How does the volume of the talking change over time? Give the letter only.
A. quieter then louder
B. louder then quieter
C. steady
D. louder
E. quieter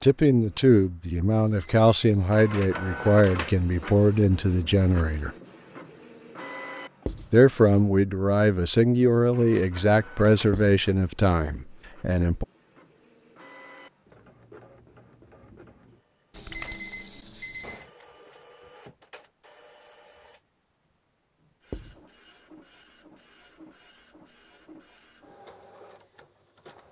C.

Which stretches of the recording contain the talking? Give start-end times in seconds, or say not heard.
0.0-5.3, 7.3-12.4.